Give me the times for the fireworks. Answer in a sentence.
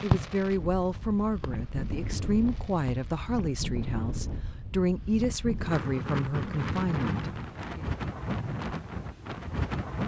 You can hear the fireworks from 0.0 to 3.3 s.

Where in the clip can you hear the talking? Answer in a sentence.
You can hear the talking from 0.0 to 7.8 s.